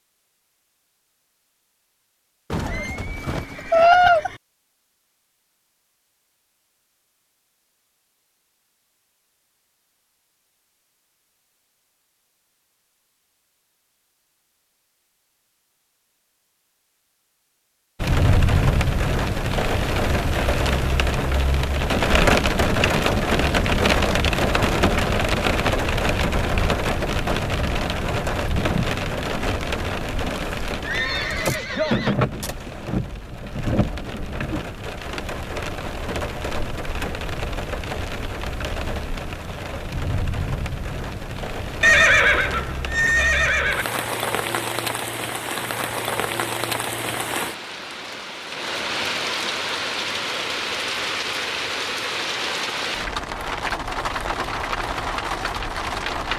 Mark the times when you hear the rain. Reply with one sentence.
You can hear the rain from 18.0 to 56.3 s.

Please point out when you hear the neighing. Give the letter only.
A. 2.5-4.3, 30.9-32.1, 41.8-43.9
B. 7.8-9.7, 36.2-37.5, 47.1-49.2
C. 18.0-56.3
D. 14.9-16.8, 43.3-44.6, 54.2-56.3
A.